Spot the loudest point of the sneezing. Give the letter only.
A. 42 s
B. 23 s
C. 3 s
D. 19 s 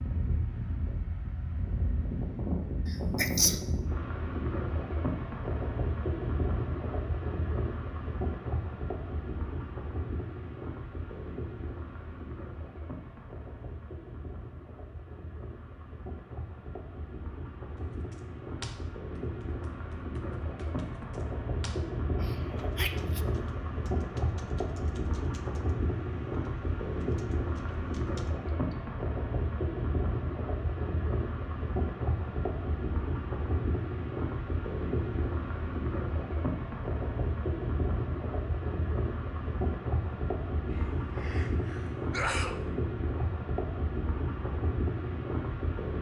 C.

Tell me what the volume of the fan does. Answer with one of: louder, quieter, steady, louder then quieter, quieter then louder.
quieter then louder.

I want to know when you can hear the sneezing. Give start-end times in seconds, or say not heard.
2.9-3.6, 22.2-23.2, 40.7-42.5.